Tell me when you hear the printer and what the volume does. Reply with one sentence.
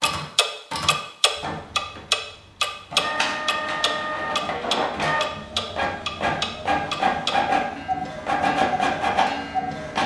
You can hear the printer from 0.0 to 10.0 s, getting louder.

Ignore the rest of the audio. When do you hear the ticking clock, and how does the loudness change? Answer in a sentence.
You can hear the ticking clock from 0.0 to 10.0 s, getting quieter.